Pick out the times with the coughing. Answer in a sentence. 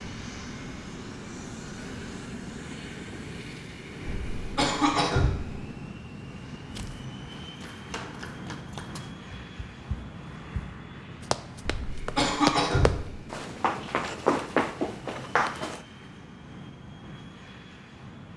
The coughing can be heard from 4.0 to 5.5 s and from 11.7 to 13.2 s.